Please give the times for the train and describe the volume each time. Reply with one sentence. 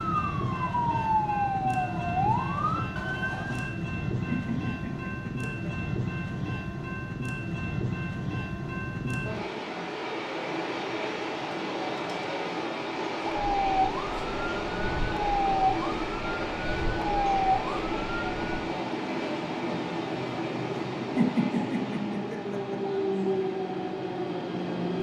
The train can be heard from 0.0 to 24.9 s, at a steady volume.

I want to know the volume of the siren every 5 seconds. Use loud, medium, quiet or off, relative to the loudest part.
loud, off, loud, loud, off.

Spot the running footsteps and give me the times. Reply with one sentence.
You can't hear the running footsteps here.